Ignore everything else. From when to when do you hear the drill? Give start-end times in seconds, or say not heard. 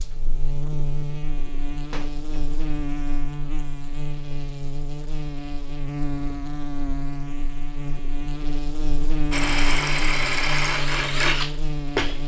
9.3-12.2.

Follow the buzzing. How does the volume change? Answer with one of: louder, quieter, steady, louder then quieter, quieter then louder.
steady.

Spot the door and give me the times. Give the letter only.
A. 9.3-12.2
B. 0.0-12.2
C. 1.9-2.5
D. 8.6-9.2
C.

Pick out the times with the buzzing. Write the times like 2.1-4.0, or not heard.
0.0-12.2.